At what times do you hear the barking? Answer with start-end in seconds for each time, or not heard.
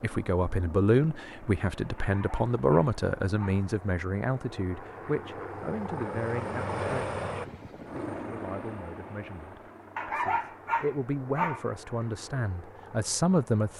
1.9-3.6, 9.9-11.7.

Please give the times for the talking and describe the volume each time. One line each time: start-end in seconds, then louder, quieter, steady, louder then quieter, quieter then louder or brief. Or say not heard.
0.0-13.7 quieter then louder.